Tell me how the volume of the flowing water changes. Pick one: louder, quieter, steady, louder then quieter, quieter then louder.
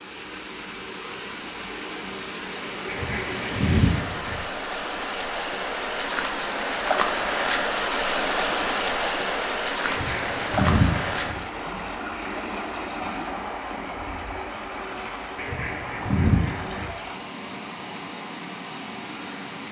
louder then quieter.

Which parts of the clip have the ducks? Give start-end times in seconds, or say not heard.
2.9-4.4, 9.8-11.4, 15.3-16.9.